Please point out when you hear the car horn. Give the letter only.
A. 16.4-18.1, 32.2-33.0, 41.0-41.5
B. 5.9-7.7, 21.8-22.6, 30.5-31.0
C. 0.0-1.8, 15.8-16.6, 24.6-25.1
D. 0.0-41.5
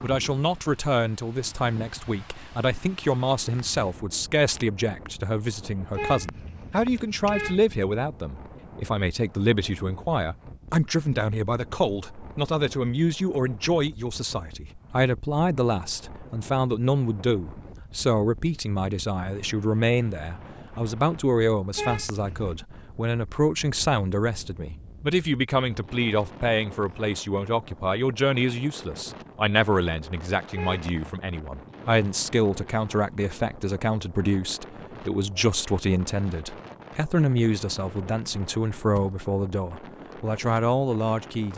B.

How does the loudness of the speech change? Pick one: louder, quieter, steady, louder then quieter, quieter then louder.
steady.